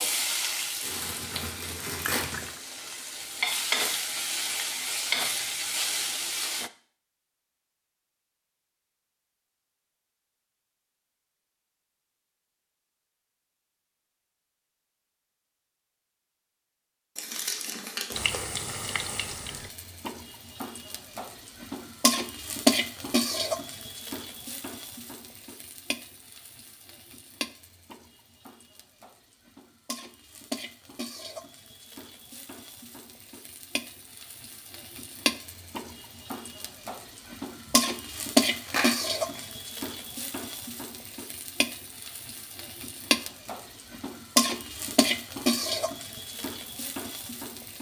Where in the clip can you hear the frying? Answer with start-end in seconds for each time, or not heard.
0.0-6.7, 18.1-47.7.